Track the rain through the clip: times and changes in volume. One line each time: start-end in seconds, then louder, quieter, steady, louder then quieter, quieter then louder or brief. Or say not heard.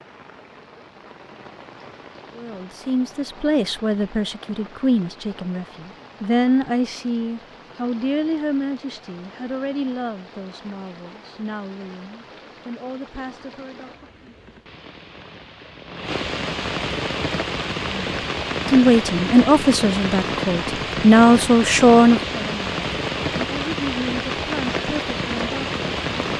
0.0-26.3 louder.